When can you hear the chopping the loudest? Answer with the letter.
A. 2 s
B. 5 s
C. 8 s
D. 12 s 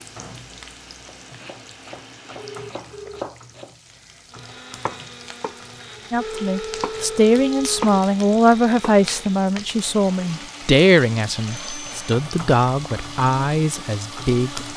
C.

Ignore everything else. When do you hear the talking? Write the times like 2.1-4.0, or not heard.
6.1-14.7.